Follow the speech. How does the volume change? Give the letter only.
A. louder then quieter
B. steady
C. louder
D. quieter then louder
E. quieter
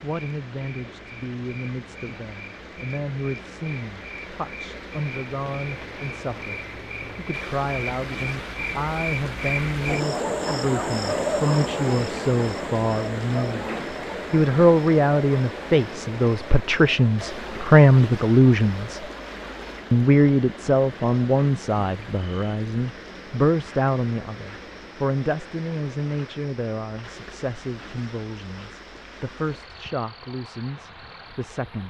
A.